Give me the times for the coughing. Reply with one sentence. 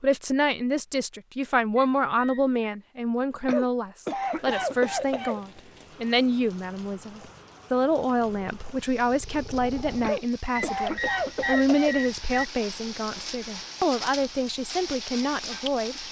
The coughing can be heard from 3.5 to 5.4 s and from 10.0 to 12.0 s.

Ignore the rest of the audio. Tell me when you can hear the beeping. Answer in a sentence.
You can hear the beeping from 1.8 to 2.6 s and from 10.6 to 12.4 s.